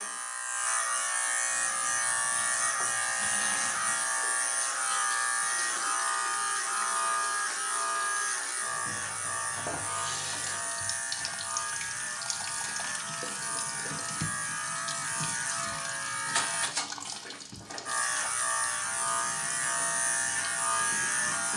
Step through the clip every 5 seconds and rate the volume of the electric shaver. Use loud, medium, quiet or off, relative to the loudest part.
loud, loud, medium, loud, loud.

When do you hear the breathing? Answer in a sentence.
The breathing can't be heard in this clip.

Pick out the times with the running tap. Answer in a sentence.
The running tap can be heard from 1.4 to 21.5 s.